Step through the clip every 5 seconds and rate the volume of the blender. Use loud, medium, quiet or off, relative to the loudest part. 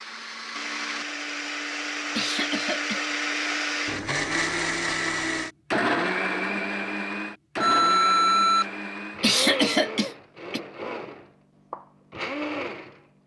loud, loud, medium.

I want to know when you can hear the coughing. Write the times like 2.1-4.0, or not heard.
2.1-3.0, 9.2-10.6.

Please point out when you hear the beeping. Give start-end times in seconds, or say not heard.
7.6-8.7.